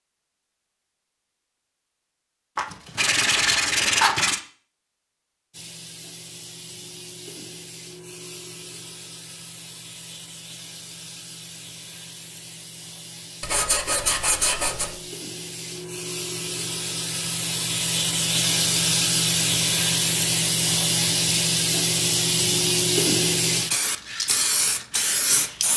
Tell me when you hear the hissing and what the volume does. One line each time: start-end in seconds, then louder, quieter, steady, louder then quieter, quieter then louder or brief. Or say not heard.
5.5-25.7 louder.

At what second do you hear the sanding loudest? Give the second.
4 s.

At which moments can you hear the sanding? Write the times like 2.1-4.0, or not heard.
2.5-4.4, 13.4-15.0.